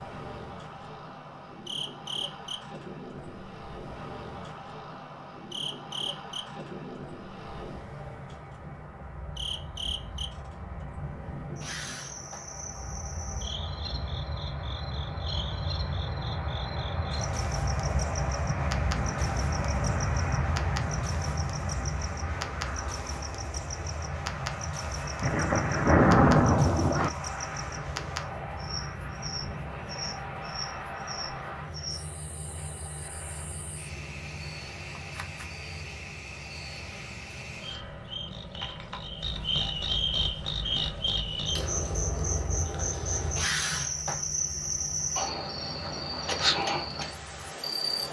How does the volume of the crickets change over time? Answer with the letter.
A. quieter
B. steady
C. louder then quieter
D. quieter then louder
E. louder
E.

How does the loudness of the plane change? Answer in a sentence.
The volume of the plane goes up, then down.